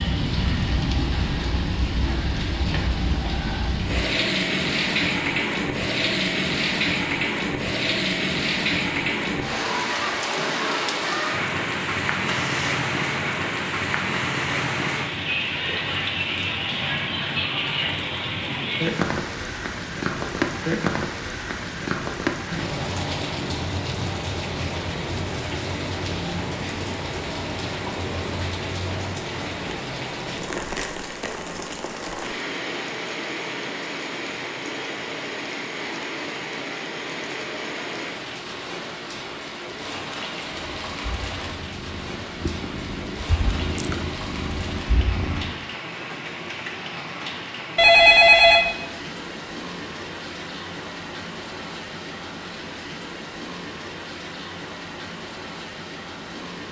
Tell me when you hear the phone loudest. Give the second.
48 s.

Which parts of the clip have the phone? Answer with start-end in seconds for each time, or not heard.
12.2-12.8, 47.8-48.6.